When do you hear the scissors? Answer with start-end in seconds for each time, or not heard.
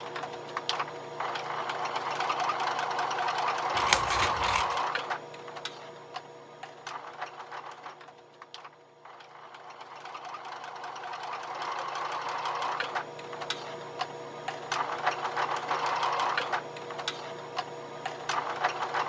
3.8-4.8.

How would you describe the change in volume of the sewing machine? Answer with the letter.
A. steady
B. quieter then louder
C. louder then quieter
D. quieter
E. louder
B.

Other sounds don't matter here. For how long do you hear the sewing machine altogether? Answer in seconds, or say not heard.
19 s.